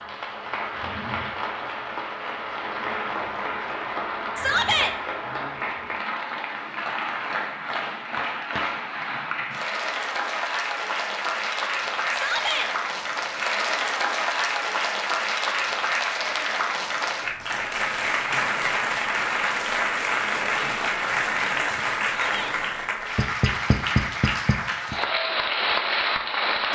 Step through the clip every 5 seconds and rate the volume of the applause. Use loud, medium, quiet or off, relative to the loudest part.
medium, medium, loud, loud, loud, loud.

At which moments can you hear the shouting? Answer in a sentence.
You can hear the shouting from 4.3 to 5.0 s, from 12.1 to 12.7 s and from 22.2 to 22.6 s.